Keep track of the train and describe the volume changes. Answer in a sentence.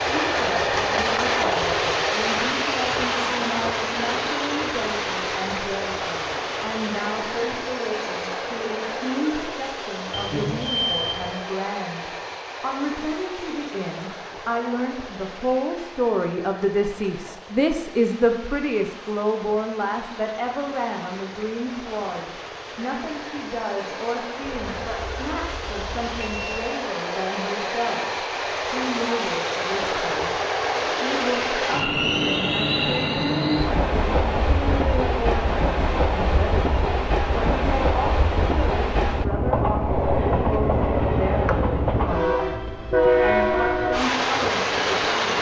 The loudness of the train goes down, then up.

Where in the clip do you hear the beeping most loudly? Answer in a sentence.
The volume of the beeping peaks at 11 seconds.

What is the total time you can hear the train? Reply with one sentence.
You can hear the train for 45 seconds altogether.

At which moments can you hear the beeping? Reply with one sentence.
The beeping can be heard from 10.1 to 11.3 s and from 24.4 to 26.6 s.